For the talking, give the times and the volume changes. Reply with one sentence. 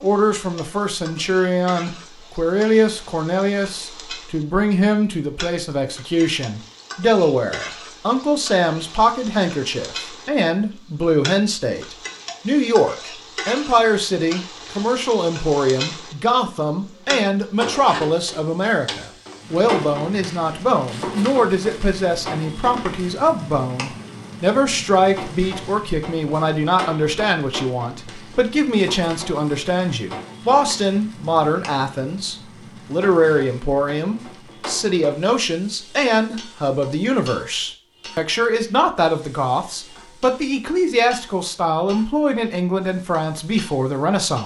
The talking can be heard from 0.0 to 44.4 s, at a steady volume.